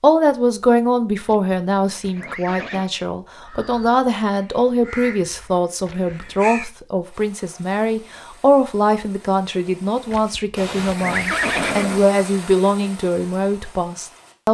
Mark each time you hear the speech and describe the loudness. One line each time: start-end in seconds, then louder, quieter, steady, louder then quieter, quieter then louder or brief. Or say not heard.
0.0-14.4 steady.